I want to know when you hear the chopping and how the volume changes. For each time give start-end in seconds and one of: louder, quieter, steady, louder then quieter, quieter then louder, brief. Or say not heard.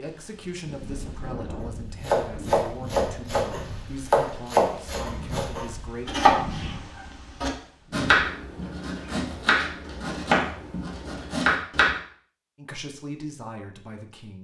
2.0-11.9 steady.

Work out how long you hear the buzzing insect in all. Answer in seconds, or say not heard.
not heard.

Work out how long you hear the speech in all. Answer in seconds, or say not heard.
8 s.